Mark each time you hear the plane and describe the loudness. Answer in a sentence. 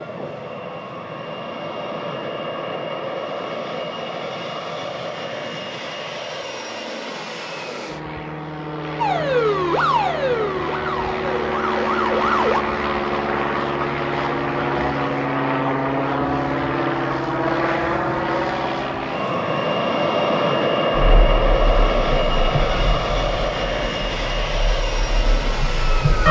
The plane can be heard from 0.0 to 26.2 s, getting louder.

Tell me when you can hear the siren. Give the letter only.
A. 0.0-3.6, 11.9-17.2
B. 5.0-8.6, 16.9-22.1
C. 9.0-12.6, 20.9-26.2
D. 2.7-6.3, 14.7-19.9
C.